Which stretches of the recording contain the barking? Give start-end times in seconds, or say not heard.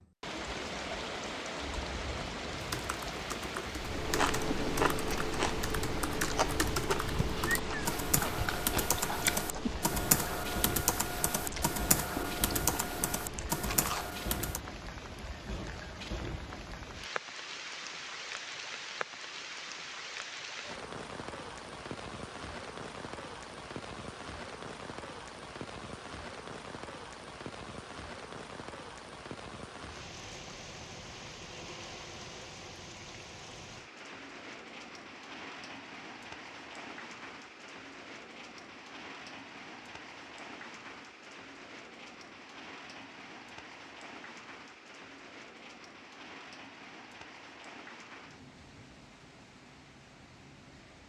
not heard.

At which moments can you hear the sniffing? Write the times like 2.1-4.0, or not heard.
not heard.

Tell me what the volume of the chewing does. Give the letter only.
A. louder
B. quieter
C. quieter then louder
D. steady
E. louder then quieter
B.